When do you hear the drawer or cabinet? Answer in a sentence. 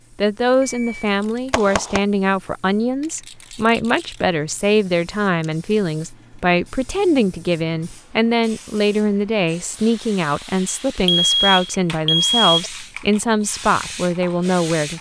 You can't hear the drawer or cabinet here.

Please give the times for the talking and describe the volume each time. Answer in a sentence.
You can hear the talking from 0.1 to 14.9 s, at a steady volume.